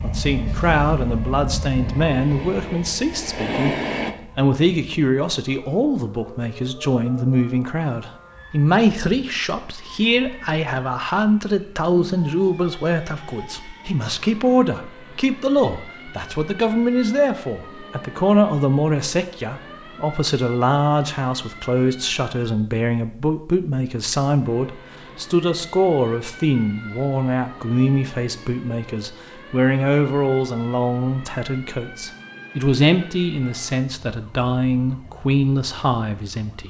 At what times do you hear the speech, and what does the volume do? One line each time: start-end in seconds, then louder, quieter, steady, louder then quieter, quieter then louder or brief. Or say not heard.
0.0-36.6 steady.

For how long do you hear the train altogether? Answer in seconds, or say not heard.
4 s.